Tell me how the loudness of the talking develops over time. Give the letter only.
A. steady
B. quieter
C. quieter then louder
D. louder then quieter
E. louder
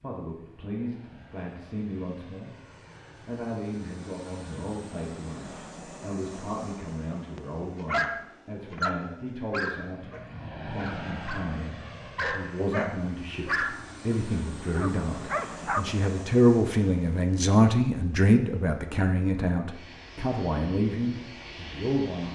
E.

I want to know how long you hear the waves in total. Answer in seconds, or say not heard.
not heard.